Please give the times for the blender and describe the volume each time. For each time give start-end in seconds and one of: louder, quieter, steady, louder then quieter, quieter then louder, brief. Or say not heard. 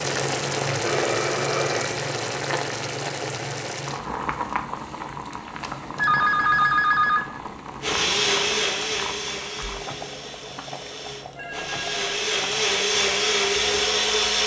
7.8-14.4 quieter then louder.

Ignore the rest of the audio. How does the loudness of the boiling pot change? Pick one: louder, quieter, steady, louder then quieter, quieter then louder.
quieter.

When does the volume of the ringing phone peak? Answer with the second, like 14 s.
7 s.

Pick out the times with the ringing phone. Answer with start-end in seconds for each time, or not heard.
0.8-1.9, 6.0-7.2, 11.3-12.2.